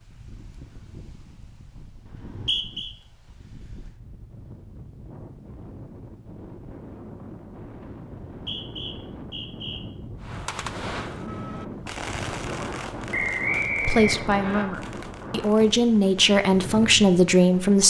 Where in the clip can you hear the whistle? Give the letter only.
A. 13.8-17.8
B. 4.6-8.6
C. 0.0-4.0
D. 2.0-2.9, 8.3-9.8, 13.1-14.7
D.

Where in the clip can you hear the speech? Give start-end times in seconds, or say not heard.
13.8-17.8.